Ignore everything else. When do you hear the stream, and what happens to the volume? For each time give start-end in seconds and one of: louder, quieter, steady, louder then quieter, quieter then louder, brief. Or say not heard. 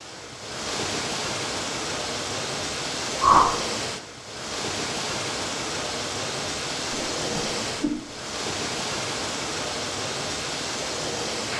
0.0-11.5 steady.